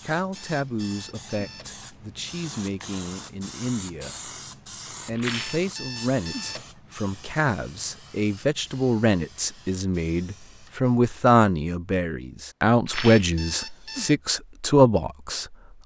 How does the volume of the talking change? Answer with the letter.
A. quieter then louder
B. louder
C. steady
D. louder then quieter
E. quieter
B.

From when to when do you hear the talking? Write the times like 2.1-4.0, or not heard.
0.1-4.3, 5.0-15.6.